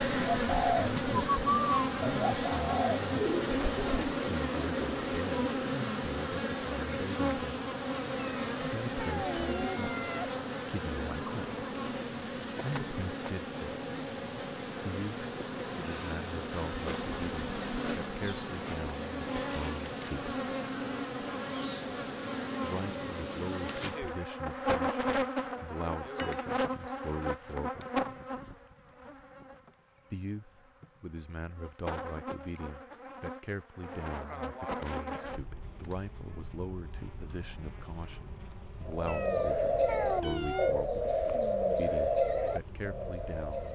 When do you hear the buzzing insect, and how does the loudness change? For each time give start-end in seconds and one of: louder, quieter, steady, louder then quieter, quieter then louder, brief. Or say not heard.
0.0-43.7 quieter.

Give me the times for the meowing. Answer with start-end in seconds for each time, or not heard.
8.2-10.4, 39.0-40.8.